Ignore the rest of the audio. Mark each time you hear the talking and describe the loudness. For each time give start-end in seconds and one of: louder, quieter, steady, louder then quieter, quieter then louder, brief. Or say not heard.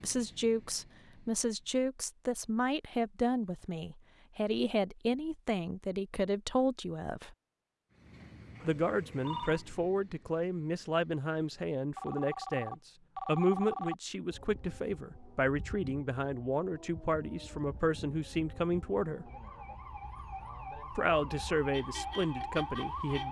0.0-7.3 steady
8.6-19.3 steady
20.9-23.2 brief.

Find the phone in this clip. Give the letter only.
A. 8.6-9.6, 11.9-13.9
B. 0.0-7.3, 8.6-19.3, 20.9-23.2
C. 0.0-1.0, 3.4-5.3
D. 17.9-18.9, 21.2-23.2
A.